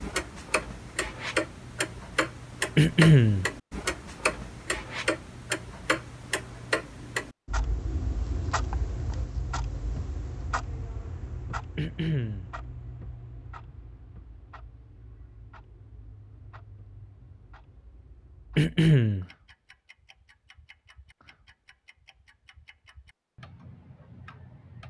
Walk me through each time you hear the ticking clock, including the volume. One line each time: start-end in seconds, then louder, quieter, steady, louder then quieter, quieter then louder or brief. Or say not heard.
0.0-24.8 quieter.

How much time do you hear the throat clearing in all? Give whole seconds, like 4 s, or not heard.
2 s.